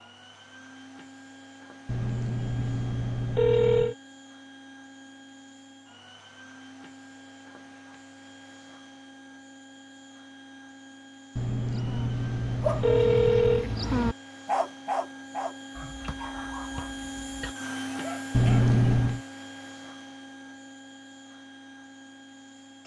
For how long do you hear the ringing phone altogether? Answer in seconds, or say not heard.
5 s.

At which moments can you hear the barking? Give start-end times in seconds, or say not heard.
11.7-18.7.